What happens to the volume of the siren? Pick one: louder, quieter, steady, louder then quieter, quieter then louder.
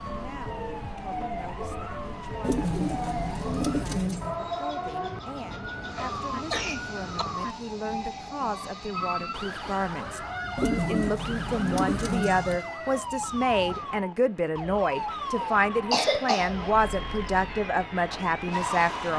steady.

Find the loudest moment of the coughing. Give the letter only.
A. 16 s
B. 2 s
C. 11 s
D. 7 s
A.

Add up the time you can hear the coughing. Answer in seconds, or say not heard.
3 s.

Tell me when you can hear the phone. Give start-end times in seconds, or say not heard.
not heard.